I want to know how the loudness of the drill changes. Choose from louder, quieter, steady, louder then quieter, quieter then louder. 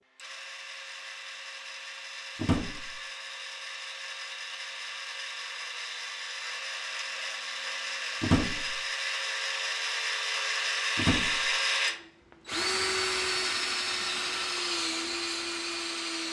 louder.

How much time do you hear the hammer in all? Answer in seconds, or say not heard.
not heard.